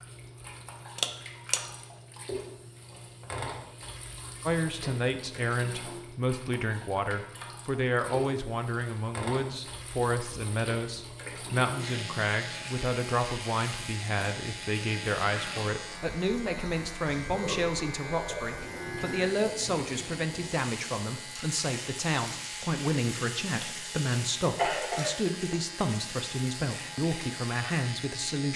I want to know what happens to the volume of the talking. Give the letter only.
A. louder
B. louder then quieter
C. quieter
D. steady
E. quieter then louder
D.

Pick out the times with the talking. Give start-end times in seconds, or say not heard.
4.5-28.5.